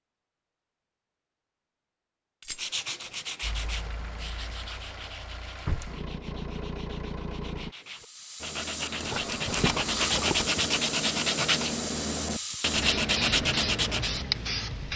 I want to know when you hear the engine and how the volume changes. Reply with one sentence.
You can hear the engine from 3.4 to 7.8 s, getting louder.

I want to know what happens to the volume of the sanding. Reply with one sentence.
The volume of the sanding goes down, then up.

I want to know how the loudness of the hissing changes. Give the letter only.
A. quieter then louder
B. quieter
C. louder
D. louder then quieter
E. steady
C.